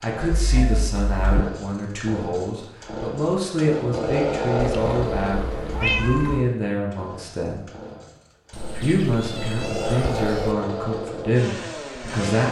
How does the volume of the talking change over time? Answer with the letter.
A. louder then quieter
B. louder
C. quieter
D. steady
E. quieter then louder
D.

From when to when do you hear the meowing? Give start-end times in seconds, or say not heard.
0.3-1.4, 4.5-6.5, 8.5-10.6.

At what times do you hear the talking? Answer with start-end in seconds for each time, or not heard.
0.0-7.7, 8.8-12.4.